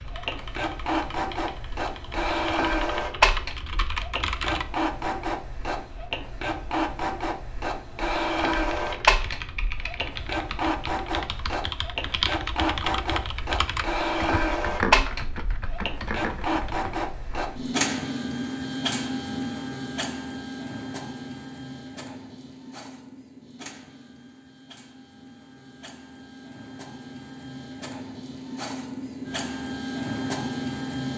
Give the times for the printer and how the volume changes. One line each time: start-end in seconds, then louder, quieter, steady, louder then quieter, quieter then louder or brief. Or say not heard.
0.0-31.1 quieter.